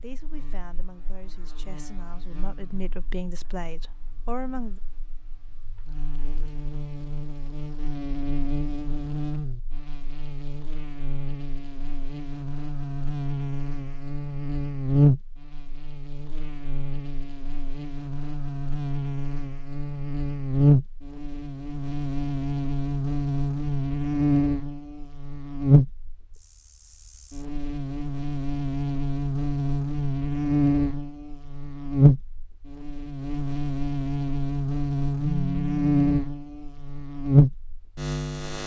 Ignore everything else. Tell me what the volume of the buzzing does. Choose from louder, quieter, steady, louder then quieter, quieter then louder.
louder.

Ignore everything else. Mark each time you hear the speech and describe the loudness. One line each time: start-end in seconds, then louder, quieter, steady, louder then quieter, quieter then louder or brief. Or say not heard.
0.0-4.8 louder.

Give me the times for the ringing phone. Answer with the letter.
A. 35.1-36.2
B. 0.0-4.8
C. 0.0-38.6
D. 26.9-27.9
A.